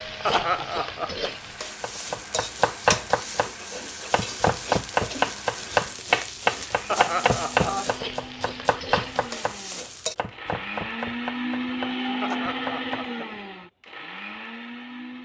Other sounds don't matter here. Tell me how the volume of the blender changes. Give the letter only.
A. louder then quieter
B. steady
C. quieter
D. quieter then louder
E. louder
E.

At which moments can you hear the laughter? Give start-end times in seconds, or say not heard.
0.2-1.4, 6.8-7.9, 12.2-13.3.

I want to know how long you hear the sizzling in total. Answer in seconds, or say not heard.
10 s.